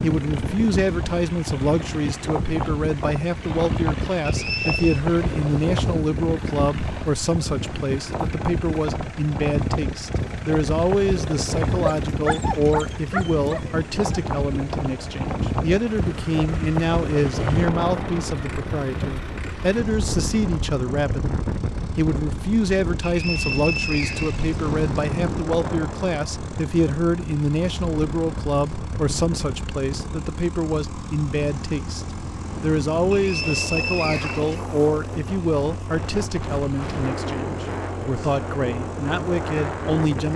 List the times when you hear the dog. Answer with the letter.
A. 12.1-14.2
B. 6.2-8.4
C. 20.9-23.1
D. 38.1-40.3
A.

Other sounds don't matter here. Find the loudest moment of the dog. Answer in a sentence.
The loudest moment of the dog is at 13 seconds.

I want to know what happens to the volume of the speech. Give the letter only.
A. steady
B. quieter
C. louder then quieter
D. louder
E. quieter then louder
A.